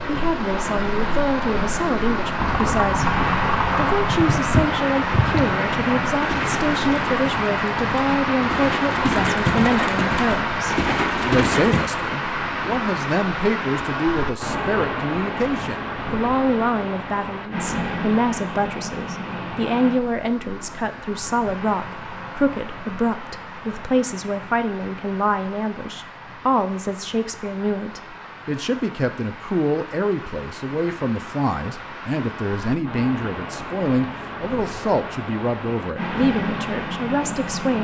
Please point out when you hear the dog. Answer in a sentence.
The dog can't be heard in this clip.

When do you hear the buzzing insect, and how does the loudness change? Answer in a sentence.
The buzzing insect can't be heard in this clip.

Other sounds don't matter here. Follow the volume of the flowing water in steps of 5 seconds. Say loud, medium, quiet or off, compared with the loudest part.
loud, loud, loud, medium, quiet, quiet, medium, medium.